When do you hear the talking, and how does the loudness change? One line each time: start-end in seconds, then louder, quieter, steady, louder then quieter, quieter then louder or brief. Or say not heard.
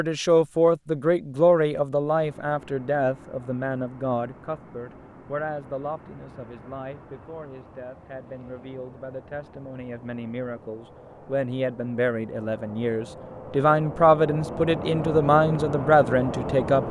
0.0-16.8 quieter then louder.